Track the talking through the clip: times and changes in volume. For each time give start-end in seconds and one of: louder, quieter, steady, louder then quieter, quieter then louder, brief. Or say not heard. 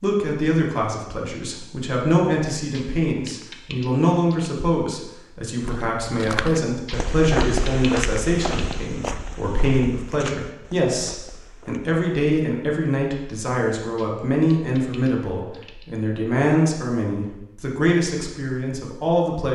0.0-19.4 steady.